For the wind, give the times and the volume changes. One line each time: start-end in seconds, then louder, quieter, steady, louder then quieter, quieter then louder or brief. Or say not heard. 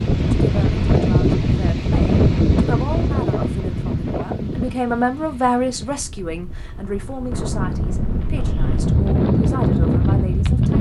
0.0-10.7 quieter then louder.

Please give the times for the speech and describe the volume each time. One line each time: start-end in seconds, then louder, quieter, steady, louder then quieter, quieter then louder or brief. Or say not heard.
0.3-10.7 louder then quieter.